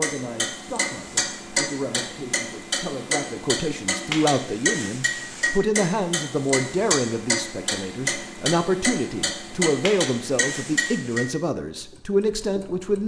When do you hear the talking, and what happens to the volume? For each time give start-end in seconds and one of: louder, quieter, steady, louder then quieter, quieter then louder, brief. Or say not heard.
0.0-13.0 louder.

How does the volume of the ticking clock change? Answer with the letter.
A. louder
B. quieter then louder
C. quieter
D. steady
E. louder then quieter
D.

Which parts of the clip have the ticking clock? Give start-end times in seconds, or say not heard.
0.0-13.0.